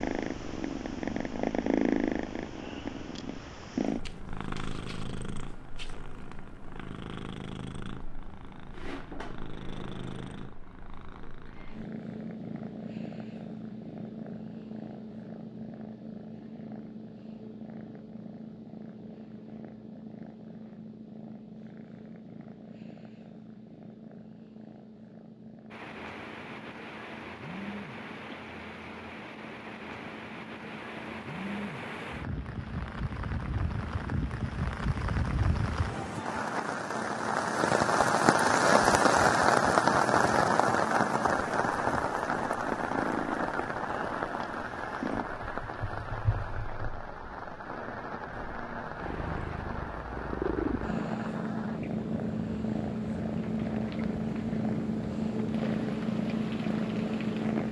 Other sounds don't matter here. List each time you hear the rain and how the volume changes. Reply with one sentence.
The rain can be heard from 25.7 to 57.6 s, getting louder then quieter.